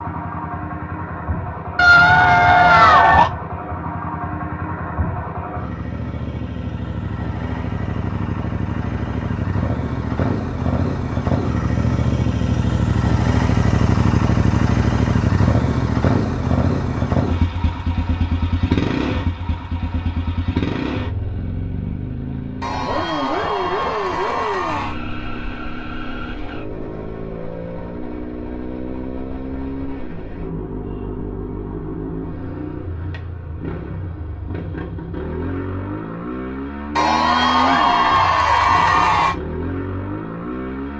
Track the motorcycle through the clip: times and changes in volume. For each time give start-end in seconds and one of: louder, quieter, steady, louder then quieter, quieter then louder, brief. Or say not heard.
0.0-40.9 louder then quieter.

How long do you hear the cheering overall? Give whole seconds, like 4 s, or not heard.
6 s.